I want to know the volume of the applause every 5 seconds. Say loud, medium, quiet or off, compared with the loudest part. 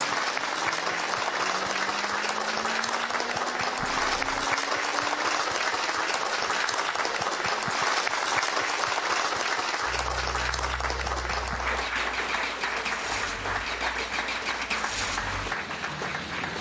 loud, loud, loud, medium.